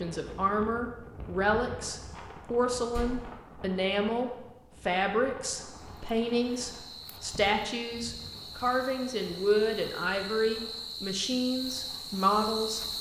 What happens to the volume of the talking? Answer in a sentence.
The loudness of the talking stays about the same.